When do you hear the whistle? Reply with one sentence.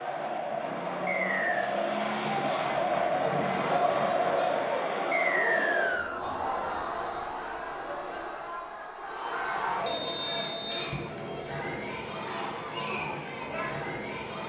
The whistle can be heard from 1.1 to 1.7 s, from 5.1 to 6.2 s and from 9.8 to 10.9 s.